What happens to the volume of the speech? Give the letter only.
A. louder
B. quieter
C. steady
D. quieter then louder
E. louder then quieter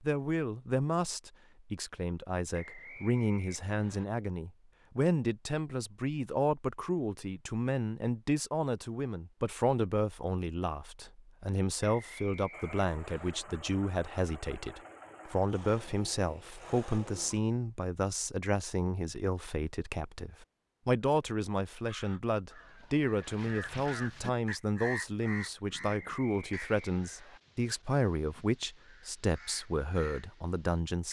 C.